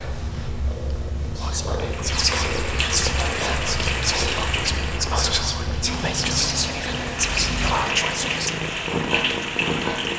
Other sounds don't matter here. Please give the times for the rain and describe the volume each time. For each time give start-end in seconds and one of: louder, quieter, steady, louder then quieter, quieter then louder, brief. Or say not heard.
1.9-10.1 quieter then louder.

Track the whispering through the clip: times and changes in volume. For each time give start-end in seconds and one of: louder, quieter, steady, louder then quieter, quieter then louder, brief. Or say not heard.
1.4-8.5 steady.